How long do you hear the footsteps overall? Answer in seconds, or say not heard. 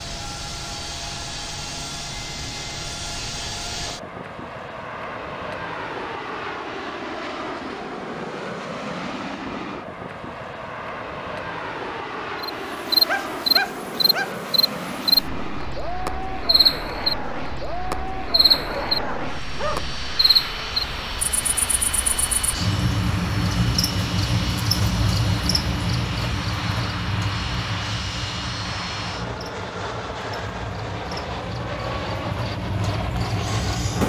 not heard.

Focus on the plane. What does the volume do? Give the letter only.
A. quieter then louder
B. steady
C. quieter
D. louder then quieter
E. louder
B.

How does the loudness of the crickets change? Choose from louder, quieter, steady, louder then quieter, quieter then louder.
quieter.